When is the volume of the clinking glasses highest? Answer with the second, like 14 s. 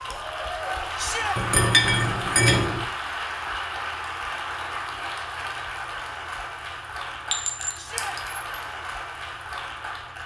2 s.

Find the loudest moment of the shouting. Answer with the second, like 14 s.
1 s.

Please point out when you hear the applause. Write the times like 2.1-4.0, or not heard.
0.0-10.2.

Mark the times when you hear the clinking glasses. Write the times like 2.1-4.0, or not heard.
1.4-2.9, 7.3-8.3.